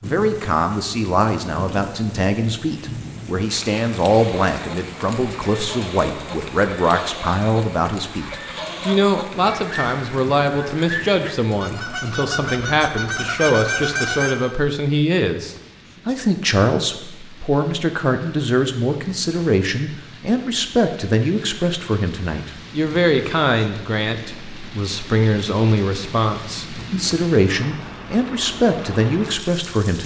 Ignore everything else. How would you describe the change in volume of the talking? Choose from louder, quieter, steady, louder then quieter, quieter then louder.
steady.